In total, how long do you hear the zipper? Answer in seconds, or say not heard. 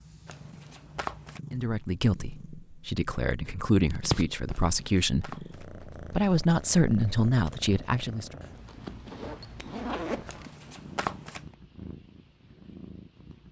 2 s.